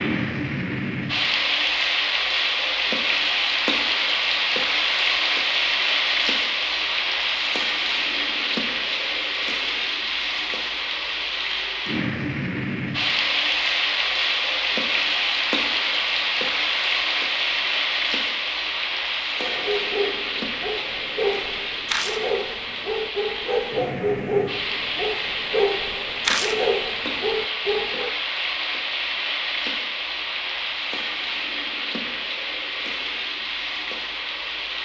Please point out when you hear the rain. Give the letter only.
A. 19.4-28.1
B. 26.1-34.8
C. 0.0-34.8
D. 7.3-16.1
C.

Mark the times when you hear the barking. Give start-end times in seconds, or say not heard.
19.4-28.1.